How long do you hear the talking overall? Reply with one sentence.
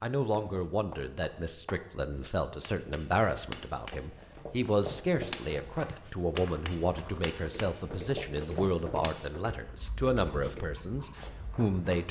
You can hear the talking for 12 seconds altogether.